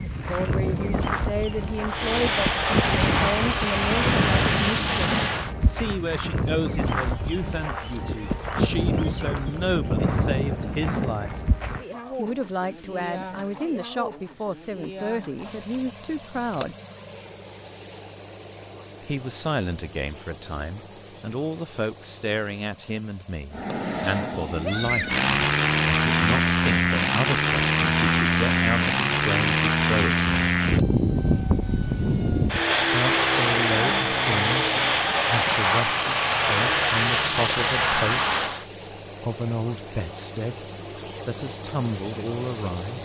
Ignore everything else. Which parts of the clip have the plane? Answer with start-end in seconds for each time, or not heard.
1.9-5.5, 23.5-38.6.